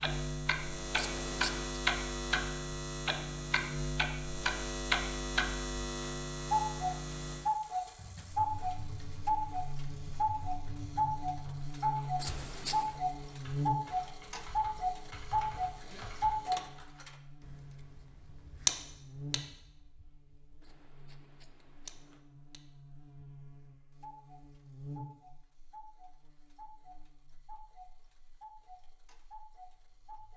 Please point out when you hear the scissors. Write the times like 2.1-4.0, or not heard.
0.9-1.7, 12.2-12.9, 20.6-22.2.